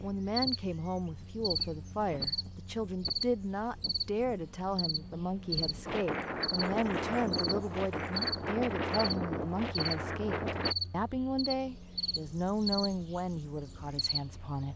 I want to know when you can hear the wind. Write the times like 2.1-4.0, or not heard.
0.2-10.8.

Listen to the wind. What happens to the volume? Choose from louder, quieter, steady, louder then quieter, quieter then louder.
louder.